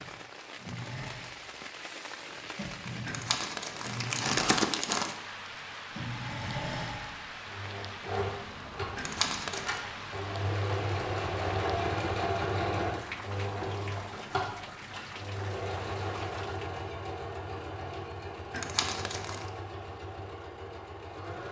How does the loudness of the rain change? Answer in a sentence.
The volume of the rain stays about the same.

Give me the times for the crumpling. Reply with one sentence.
The crumpling can be heard from 3.0 to 5.2 s, from 8.9 to 9.8 s and from 18.5 to 19.5 s.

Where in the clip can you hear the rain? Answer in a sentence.
The rain can be heard from 0.0 to 16.7 s.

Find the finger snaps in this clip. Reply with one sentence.
You can't hear the finger snaps here.